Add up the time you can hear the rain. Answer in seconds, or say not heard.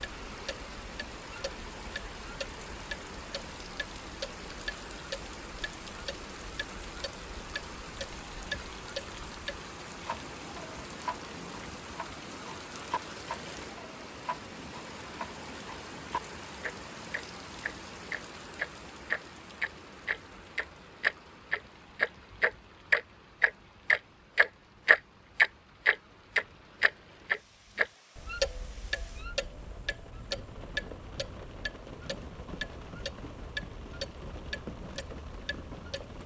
36 s.